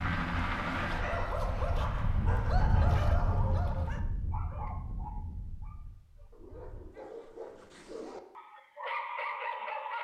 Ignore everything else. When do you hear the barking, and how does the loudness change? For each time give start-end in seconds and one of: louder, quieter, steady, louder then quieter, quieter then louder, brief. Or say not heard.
0.0-9.9 quieter then louder.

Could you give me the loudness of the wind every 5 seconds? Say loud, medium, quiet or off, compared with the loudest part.
loud, quiet.